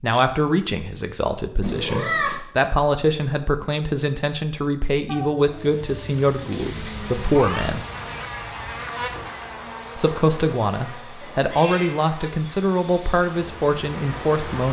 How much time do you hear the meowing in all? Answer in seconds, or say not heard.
4 s.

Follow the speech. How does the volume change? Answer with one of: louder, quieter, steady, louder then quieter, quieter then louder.
steady.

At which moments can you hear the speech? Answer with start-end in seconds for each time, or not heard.
0.0-7.8, 9.9-14.6.